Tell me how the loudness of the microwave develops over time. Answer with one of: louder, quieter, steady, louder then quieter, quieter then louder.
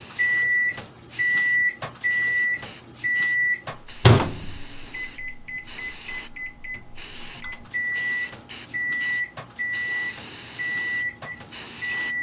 quieter then louder.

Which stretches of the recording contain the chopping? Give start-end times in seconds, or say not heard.
not heard.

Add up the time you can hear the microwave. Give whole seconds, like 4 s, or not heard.
12 s.